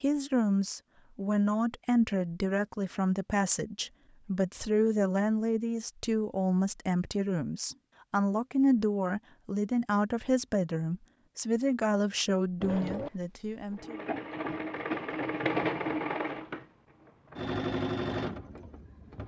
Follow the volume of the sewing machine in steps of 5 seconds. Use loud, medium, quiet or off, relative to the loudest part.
off, off, loud, loud.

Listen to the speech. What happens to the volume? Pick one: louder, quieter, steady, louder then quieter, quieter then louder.
steady.